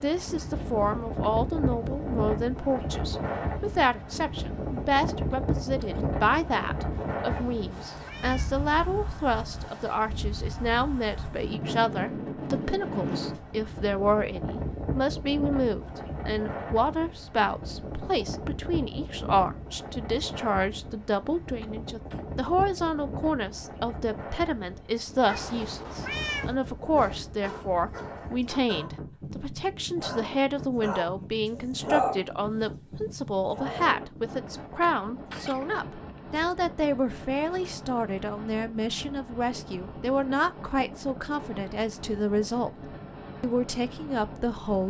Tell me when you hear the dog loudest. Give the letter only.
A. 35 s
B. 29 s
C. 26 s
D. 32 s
D.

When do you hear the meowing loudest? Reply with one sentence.
The volume of the meowing peaks at 26 seconds.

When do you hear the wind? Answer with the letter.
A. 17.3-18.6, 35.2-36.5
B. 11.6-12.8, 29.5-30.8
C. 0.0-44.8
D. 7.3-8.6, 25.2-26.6
C.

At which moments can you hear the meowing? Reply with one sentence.
You can hear the meowing from 7.3 to 8.6 s and from 25.2 to 26.6 s.